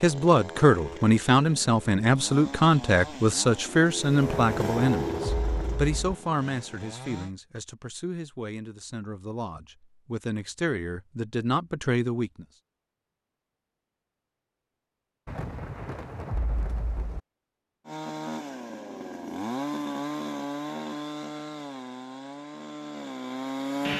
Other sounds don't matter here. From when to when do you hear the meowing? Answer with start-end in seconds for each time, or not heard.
not heard.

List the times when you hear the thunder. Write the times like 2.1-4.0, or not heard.
4.2-6.2, 15.2-17.2.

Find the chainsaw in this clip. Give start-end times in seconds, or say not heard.
0.0-7.3, 17.9-23.9.